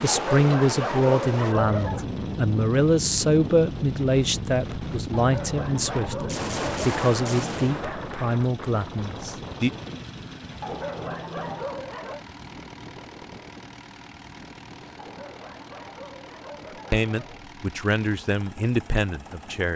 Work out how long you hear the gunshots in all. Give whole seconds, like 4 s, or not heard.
2 s.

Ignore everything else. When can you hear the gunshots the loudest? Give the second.
7 s.